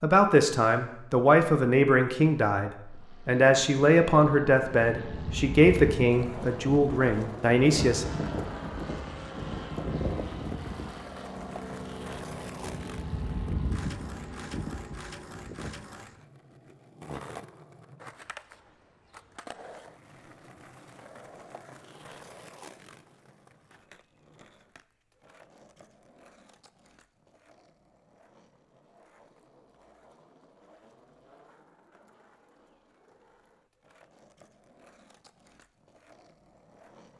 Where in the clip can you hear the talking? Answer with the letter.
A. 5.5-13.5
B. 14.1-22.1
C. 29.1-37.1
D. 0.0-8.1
D.